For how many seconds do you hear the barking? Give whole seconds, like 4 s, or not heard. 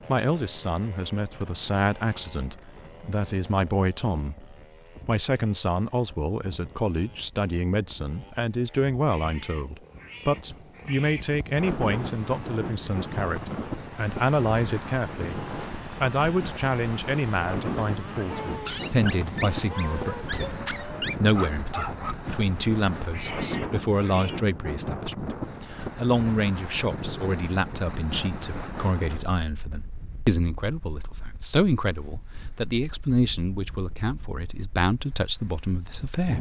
4 s.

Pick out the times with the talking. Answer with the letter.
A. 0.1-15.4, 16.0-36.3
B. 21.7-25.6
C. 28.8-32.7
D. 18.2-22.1
A.